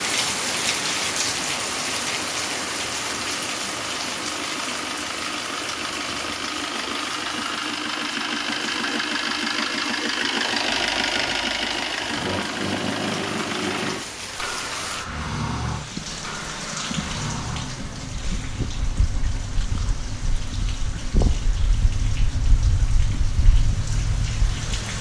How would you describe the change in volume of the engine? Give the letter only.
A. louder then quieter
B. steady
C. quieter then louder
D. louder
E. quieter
A.